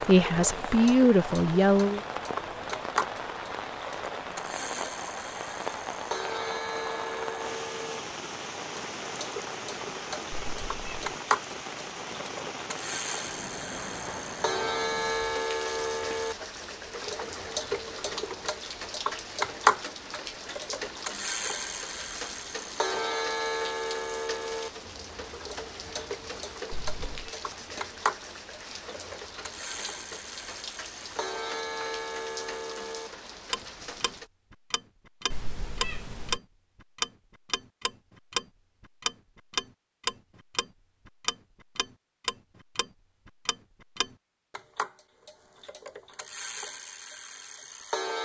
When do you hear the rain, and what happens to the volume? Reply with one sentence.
You can hear the rain from 0.0 to 34.3 s, getting quieter.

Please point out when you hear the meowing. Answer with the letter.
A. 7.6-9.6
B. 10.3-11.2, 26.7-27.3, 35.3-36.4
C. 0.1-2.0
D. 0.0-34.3
B.